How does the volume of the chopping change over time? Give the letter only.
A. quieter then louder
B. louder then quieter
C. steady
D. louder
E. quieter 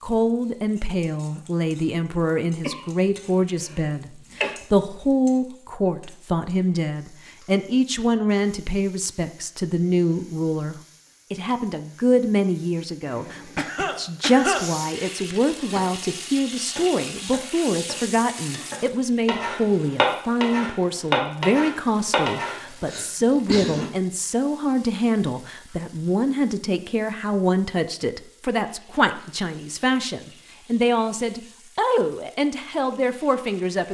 D.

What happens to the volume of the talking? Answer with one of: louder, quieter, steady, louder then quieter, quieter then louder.
steady.